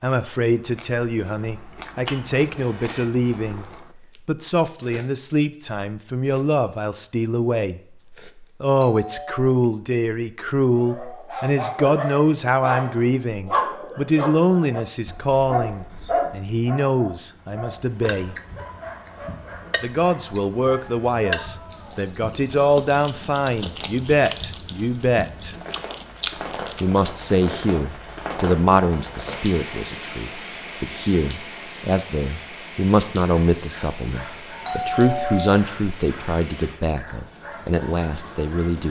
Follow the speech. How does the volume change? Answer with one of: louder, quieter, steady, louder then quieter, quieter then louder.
steady.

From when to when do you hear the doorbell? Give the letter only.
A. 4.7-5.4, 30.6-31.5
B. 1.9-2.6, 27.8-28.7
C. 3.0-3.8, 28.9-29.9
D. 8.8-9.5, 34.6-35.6
D.